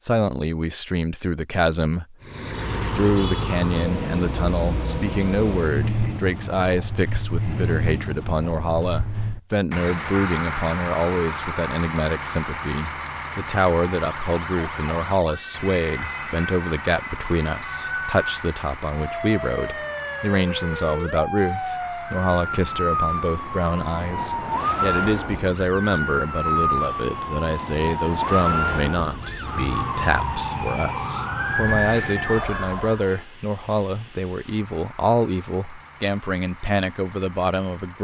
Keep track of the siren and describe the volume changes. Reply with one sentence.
The loudness of the siren goes up.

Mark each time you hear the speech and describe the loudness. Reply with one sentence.
You can hear the speech briefly from 0.0 to 2.1 s; and from 3.0 to 37.9 s, at a steady volume.